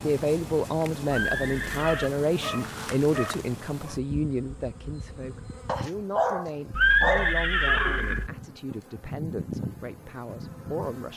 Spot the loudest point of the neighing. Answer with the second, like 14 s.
7 s.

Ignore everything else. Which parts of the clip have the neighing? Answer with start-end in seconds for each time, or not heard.
1.1-2.1, 6.7-8.3.